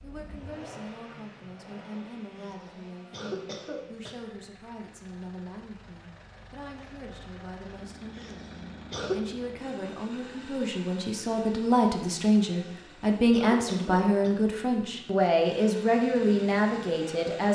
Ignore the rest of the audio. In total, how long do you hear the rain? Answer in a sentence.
The rain can't be heard in this clip.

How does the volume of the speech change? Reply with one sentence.
The loudness of the speech goes up.